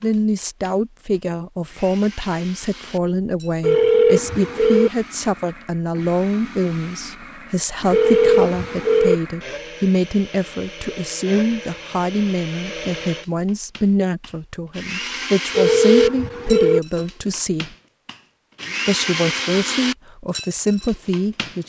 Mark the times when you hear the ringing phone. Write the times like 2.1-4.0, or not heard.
3.6-4.9, 7.9-9.2, 15.6-16.8.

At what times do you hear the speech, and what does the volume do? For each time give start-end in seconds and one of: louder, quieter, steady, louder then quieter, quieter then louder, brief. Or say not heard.
0.0-17.7 steady
18.9-21.6 brief.